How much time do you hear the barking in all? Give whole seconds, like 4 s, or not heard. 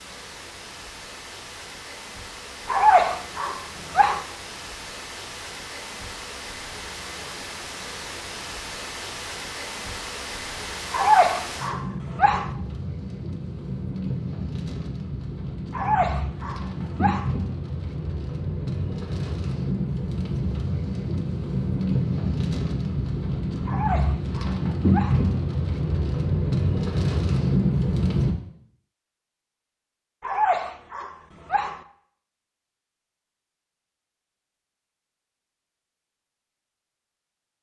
8 s.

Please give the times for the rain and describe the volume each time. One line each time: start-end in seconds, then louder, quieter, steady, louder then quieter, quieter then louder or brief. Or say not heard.
0.0-28.4 louder.